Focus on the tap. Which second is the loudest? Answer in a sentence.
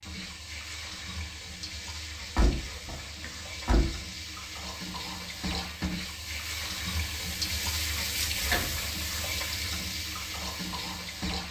The loudest moment of the tap is at 8 seconds.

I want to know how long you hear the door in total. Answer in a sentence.
The door can be heard for 2 seconds in total.